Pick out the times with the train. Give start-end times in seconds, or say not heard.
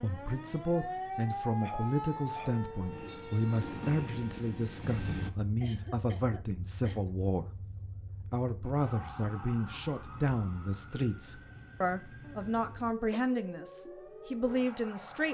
2.9-5.3.